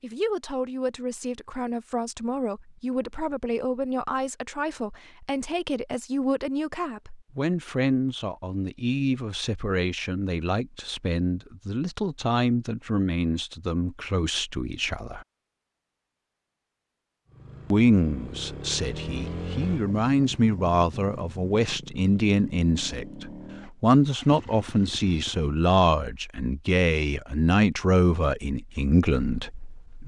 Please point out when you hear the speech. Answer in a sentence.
The speech can be heard from 0.0 to 15.2 s and from 17.7 to 30.0 s.